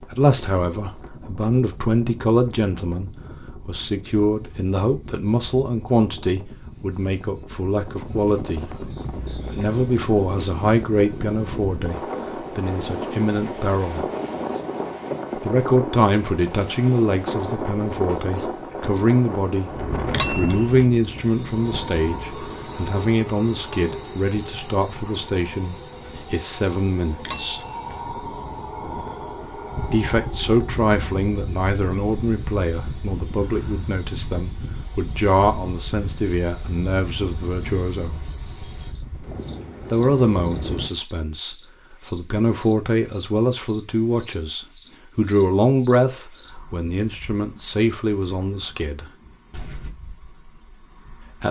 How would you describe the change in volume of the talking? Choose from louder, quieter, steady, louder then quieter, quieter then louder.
steady.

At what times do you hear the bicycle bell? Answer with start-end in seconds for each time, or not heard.
20.1-20.9, 27.1-27.9.